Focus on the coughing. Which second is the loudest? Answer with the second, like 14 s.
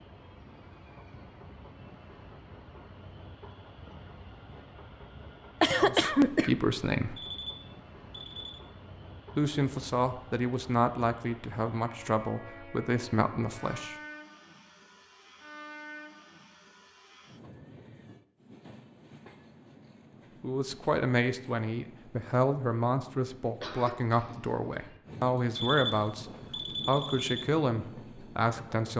6 s.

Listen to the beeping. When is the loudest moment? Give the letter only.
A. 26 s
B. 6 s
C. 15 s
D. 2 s
A.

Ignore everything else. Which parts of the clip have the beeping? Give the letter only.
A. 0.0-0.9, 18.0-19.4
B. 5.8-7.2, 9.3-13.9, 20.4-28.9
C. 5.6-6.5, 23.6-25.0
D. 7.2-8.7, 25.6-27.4
D.